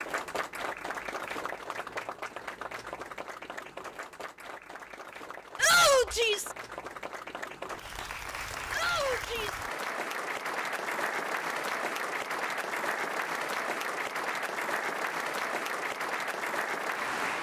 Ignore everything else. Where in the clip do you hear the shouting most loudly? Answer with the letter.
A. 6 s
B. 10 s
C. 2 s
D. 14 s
A.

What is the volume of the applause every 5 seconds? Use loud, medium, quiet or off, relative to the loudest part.
medium, medium, loud, loud.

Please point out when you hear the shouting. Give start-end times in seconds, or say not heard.
5.5-6.5, 8.7-9.7.